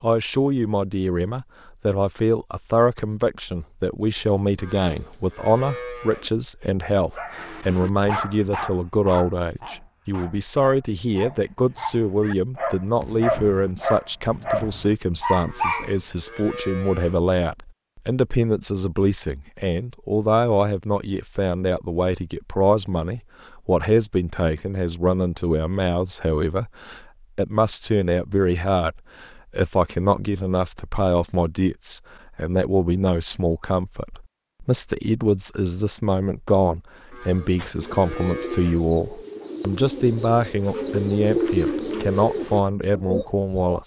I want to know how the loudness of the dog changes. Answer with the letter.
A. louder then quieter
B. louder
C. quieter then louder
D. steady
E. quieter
C.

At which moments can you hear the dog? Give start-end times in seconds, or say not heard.
7.2-16.4.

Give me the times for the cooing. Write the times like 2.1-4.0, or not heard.
37.5-43.8.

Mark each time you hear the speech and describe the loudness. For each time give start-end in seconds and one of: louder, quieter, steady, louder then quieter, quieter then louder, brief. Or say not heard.
0.0-43.8 steady.